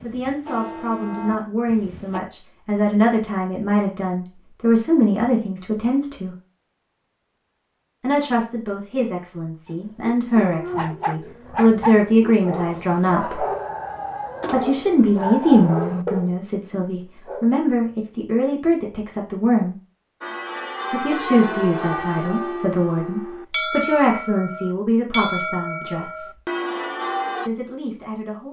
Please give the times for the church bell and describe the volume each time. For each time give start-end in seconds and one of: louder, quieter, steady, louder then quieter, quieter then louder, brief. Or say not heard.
0.0-2.2 brief
20.2-27.5 steady.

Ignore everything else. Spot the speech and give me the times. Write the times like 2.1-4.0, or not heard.
0.0-6.3, 8.0-13.4, 14.5-19.8, 20.9-26.3, 27.4-28.4.